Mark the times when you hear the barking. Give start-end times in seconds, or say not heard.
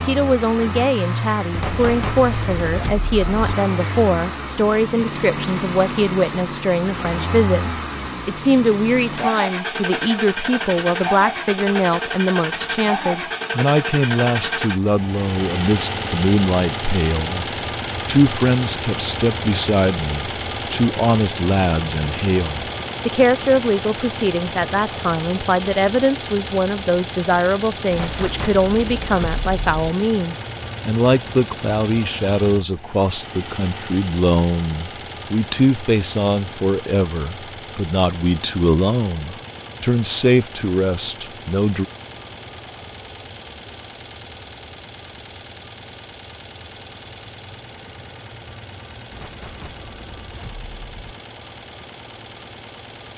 not heard.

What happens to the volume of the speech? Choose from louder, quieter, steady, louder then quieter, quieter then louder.
steady.